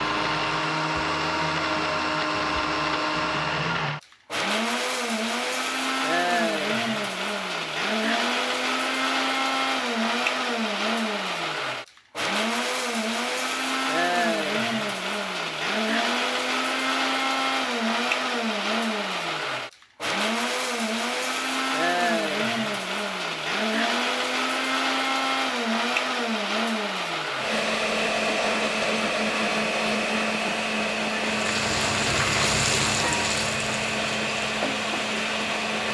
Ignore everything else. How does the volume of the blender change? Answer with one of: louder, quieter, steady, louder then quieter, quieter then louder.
steady.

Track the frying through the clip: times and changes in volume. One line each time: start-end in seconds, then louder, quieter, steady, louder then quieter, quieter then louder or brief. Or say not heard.
31.2-35.8 quieter.